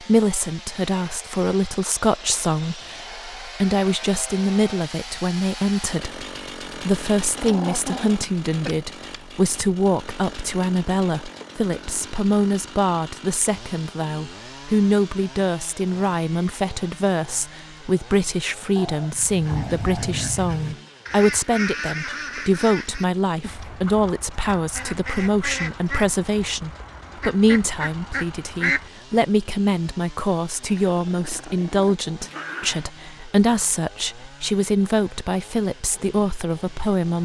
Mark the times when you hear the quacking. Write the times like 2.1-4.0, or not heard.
19.1-29.2.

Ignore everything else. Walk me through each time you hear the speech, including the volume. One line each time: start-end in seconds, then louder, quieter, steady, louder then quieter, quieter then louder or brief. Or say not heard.
0.0-37.1 steady.